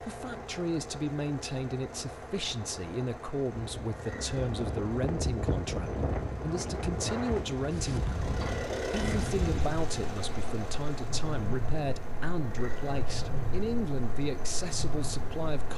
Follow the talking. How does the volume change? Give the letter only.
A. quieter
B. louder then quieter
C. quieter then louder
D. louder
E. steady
E.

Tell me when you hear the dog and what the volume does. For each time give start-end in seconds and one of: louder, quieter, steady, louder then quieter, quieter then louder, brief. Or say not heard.
not heard.